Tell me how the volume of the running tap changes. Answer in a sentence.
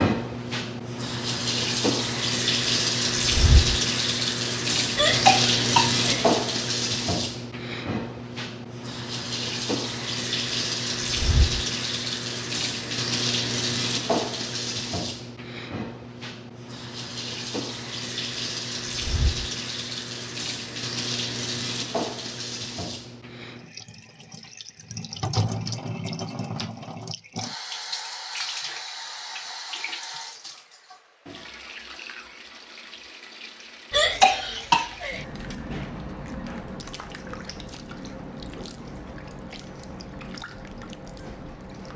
The volume of the running tap goes down.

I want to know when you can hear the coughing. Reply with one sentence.
The coughing can be heard from 5.0 to 6.3 s and from 33.9 to 35.2 s.